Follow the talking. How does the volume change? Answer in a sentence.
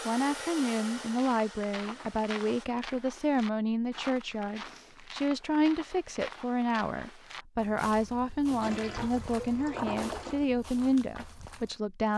The loudness of the talking stays about the same.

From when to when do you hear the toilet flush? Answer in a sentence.
The toilet flush can be heard from 8.5 to 10.4 s.